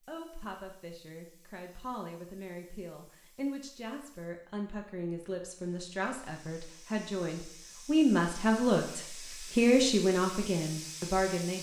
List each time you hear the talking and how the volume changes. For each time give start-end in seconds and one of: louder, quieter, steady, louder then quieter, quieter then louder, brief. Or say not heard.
0.1-11.5 louder.